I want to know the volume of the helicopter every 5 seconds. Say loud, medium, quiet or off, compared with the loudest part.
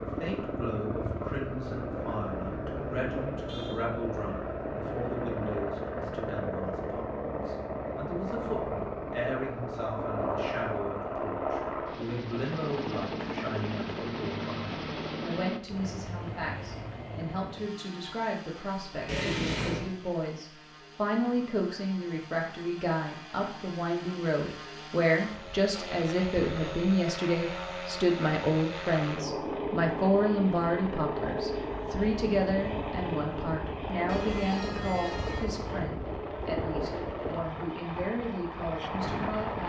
loud, loud, loud, medium, quiet, loud, loud, loud.